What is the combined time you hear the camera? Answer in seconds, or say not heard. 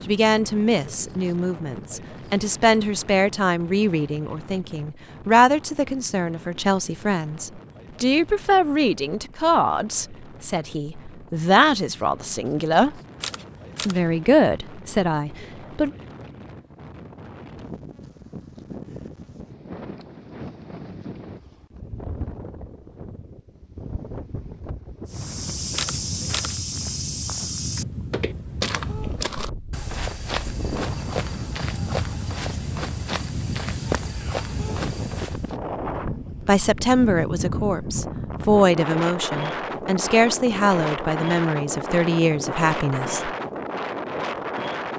2 s.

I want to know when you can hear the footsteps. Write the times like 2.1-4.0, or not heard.
25.1-35.5.